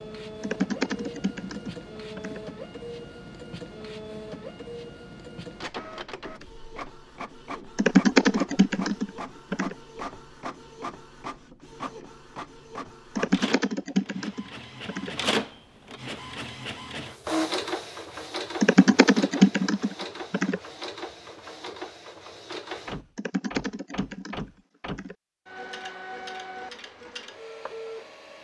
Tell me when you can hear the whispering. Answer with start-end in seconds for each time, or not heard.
not heard.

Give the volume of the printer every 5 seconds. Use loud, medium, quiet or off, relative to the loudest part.
medium, medium, medium, loud, medium, medium.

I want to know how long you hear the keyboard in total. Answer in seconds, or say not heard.
10 s.